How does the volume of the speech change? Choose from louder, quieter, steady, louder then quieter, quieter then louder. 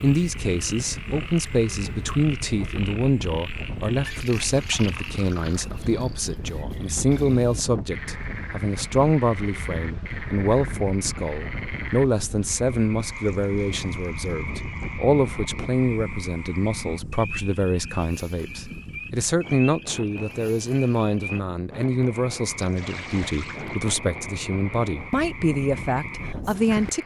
steady.